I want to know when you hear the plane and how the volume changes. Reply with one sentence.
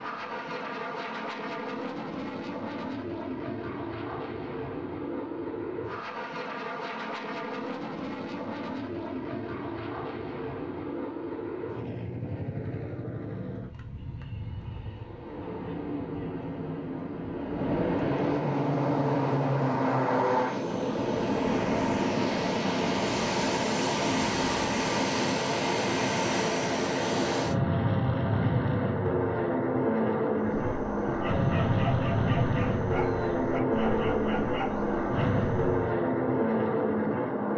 You can hear the plane from 0.0 to 37.5 s, getting louder.